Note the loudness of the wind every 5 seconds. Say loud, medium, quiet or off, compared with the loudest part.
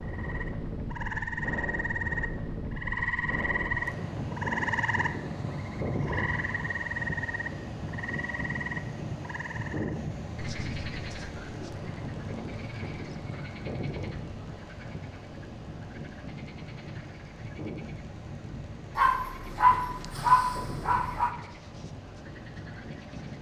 loud, loud, loud, medium, medium.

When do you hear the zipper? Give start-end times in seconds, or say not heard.
not heard.